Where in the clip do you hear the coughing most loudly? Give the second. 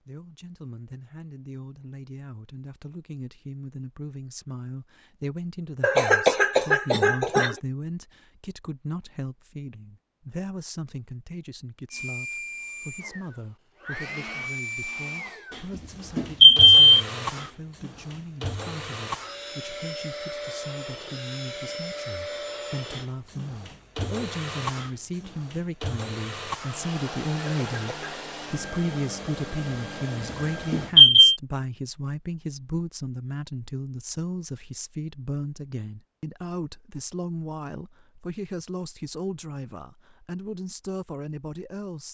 6 s.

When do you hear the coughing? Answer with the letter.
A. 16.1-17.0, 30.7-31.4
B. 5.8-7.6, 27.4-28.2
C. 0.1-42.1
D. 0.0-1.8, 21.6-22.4
B.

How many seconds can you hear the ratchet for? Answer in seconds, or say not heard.
not heard.